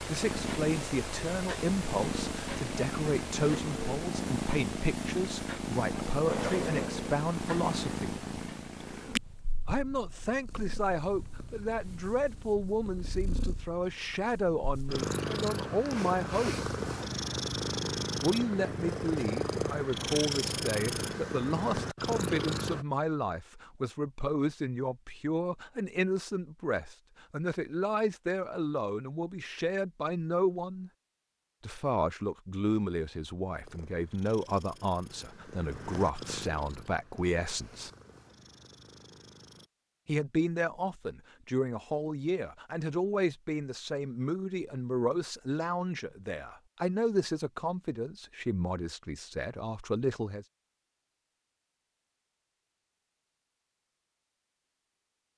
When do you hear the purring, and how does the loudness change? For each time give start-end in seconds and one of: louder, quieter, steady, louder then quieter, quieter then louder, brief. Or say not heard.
0.0-22.9 quieter then louder
33.6-39.7 louder then quieter.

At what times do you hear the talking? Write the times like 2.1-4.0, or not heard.
0.1-8.2, 9.7-16.6, 18.2-30.9, 31.6-37.9, 40.0-50.5.